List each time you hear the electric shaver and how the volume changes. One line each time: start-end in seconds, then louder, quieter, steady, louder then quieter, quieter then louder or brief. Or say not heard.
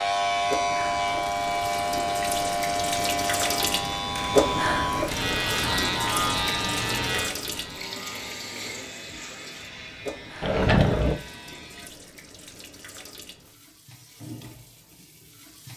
0.0-11.9 quieter.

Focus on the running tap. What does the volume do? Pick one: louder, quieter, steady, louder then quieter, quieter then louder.
louder then quieter.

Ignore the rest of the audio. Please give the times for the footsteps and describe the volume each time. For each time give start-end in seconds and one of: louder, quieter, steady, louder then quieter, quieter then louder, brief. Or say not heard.
not heard.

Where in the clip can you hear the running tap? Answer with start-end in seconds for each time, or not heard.
0.0-15.7.